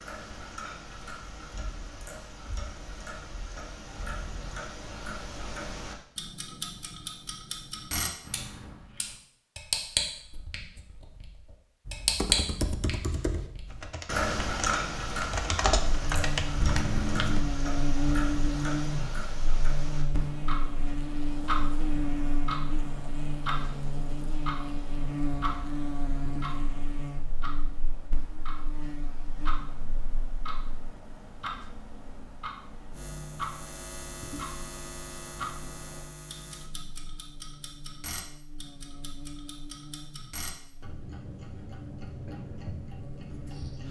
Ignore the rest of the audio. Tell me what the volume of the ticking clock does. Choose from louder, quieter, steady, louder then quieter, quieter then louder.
louder then quieter.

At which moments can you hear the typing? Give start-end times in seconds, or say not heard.
11.8-17.4.